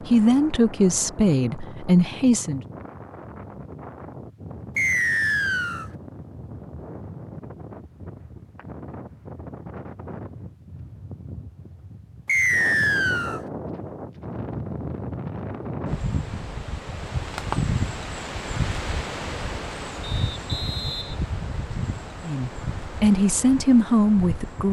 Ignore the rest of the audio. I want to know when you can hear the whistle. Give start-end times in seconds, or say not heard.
4.8-5.9, 12.2-13.4, 20.0-21.2.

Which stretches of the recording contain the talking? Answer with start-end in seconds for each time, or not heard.
0.0-2.6, 22.2-24.6.